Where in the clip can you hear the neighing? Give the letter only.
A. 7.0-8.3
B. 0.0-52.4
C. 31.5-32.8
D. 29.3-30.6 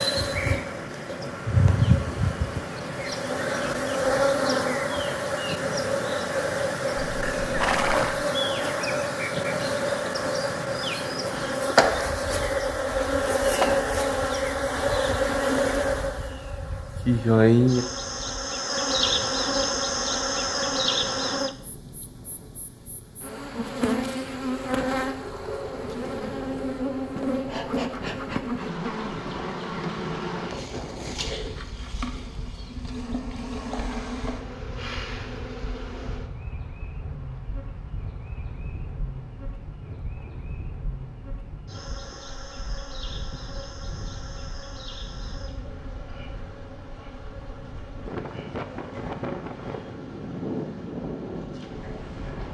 A.